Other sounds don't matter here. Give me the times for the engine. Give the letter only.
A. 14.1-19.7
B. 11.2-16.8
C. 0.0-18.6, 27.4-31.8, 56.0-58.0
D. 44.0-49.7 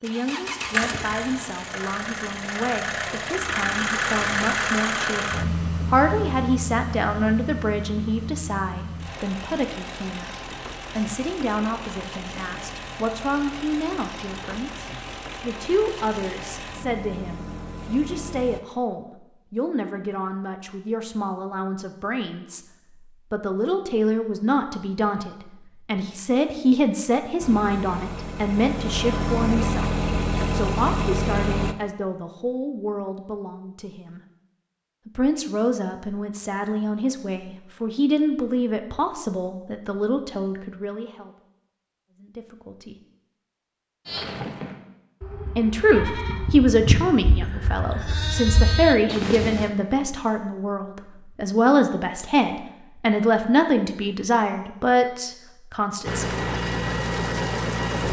C.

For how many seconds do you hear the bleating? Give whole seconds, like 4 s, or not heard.
6 s.